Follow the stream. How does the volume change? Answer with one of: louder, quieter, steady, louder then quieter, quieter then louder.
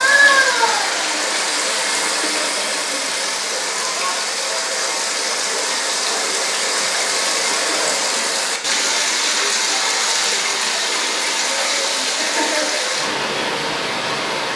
steady.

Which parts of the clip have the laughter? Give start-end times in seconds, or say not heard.
2.0-2.6, 7.5-8.1, 12.2-12.8.